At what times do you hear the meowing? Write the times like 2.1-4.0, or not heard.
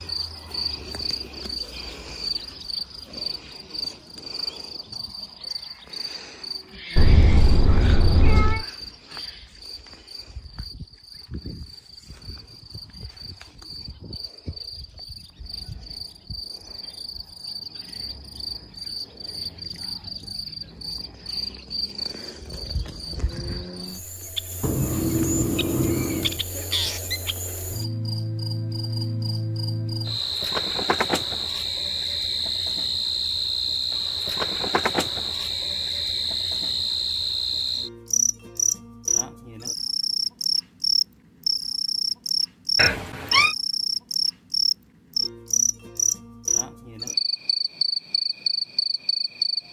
7.0-8.7, 24.6-26.4, 42.8-43.5.